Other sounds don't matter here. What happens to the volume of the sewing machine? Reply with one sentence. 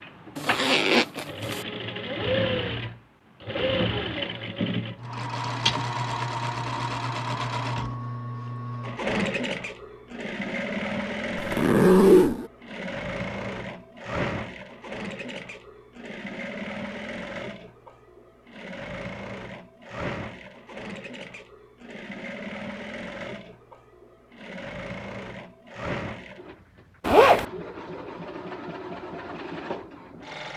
The loudness of the sewing machine goes down.